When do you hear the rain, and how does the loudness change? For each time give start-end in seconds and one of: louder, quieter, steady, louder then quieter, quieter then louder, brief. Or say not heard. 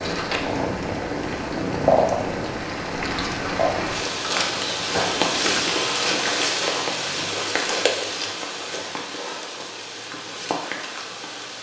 0.0-11.5 louder then quieter.